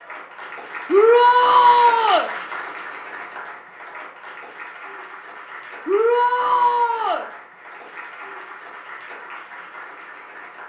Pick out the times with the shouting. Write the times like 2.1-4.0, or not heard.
0.9-2.3, 5.8-7.2.